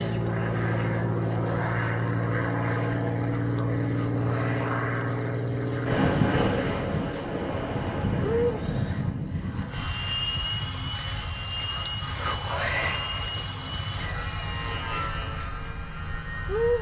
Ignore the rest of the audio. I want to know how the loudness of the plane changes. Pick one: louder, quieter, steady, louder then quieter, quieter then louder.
quieter.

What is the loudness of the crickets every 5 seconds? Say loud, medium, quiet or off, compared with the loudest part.
medium, medium, loud, loud.